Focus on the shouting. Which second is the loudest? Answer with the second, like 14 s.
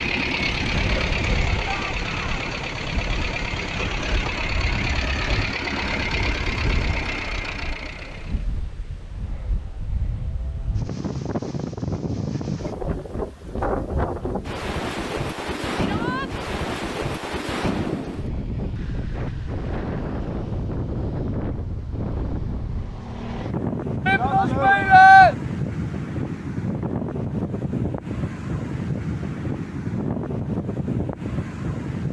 25 s.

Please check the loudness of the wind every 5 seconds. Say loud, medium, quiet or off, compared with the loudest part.
medium, medium, loud, loud, loud, loud, loud.